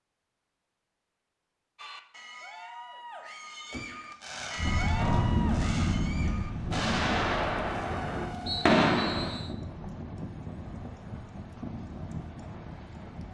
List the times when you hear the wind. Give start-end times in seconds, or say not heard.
4.5-13.2.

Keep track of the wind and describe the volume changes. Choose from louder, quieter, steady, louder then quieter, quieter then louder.
quieter.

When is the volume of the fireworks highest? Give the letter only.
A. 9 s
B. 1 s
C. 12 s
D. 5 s
A.